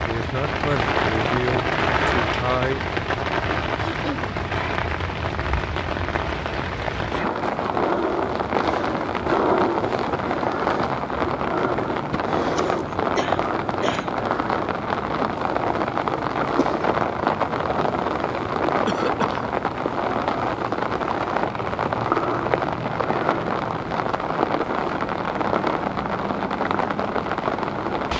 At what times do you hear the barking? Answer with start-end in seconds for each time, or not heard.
not heard.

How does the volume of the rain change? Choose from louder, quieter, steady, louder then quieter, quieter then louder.
steady.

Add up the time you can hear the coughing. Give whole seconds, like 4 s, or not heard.
3 s.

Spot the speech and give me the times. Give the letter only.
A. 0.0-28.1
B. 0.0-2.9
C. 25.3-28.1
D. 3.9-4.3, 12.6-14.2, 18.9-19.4
B.